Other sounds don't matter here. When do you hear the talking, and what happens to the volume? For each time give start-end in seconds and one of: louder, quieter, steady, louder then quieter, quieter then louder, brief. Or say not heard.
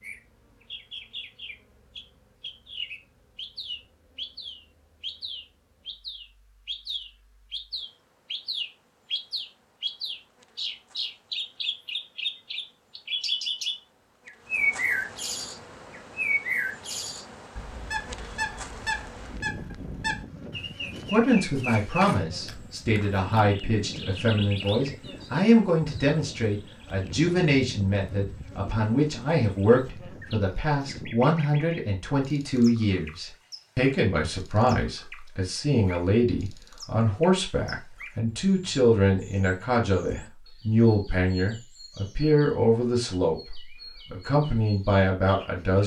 21.1-45.8 steady.